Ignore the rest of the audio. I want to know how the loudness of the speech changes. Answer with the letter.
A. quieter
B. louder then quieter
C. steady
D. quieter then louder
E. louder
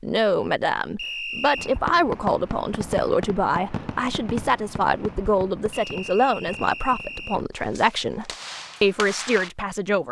C.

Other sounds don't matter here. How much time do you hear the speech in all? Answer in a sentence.
You can hear the speech for 10 seconds altogether.